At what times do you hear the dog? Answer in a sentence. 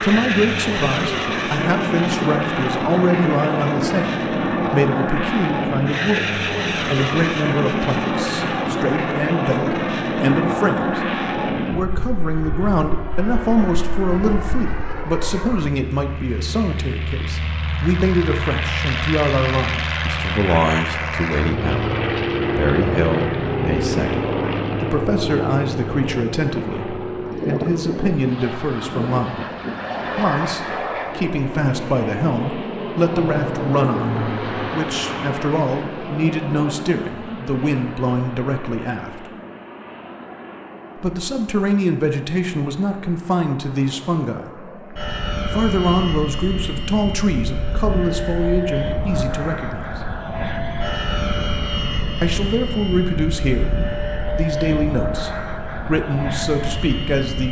The dog can't be heard in this clip.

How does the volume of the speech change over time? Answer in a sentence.
The loudness of the speech stays about the same.